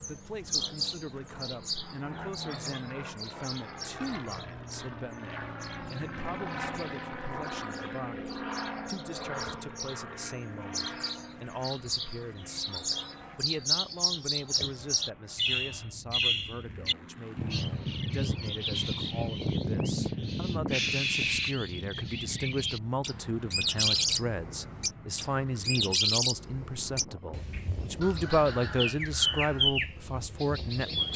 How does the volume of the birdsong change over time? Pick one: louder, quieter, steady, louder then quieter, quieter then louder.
louder.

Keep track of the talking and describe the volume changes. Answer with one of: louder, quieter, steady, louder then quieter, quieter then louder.
louder.